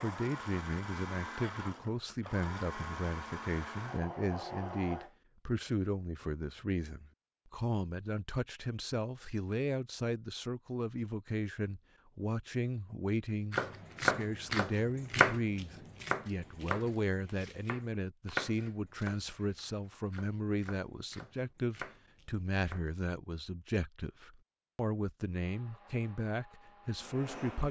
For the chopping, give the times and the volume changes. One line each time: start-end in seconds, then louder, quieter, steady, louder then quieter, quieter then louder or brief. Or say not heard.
13.5-22.9 quieter.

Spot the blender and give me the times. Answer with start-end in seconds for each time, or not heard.
0.0-5.2, 25.4-27.6.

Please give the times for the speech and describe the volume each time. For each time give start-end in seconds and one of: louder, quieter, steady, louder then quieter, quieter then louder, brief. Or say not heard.
0.0-27.6 steady.